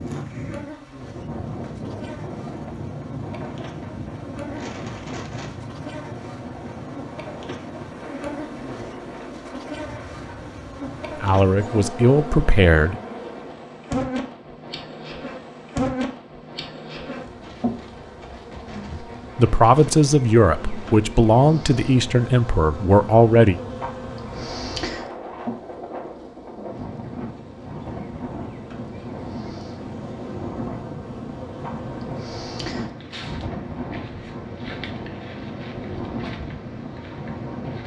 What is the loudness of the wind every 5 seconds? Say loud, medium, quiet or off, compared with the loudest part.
loud, loud, medium, medium, medium, loud, loud, loud.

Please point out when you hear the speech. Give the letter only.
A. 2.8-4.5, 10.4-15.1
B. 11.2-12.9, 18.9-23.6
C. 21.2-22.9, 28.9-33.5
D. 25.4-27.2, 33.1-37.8
B.